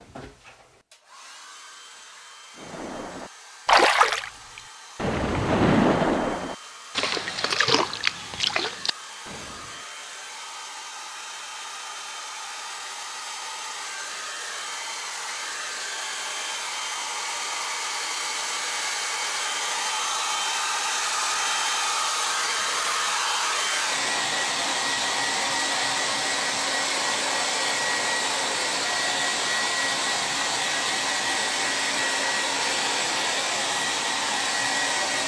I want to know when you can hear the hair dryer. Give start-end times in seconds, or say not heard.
0.0-35.2.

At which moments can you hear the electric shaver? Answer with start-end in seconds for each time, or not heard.
not heard.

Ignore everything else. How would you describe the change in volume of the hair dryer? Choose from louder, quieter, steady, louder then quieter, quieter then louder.
louder.